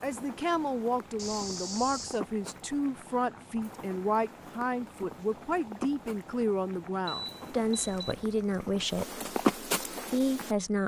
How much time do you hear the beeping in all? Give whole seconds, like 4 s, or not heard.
2 s.